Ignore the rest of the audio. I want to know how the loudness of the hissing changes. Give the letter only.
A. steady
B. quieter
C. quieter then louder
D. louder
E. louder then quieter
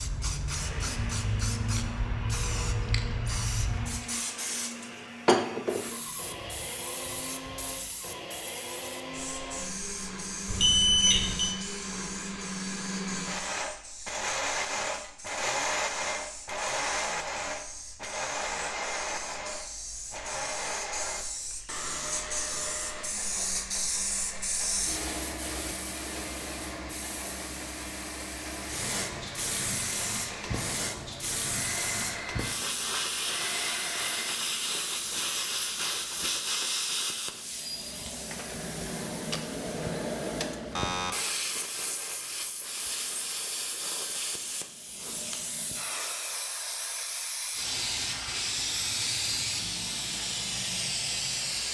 C.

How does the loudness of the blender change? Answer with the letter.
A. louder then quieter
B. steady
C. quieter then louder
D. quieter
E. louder
A.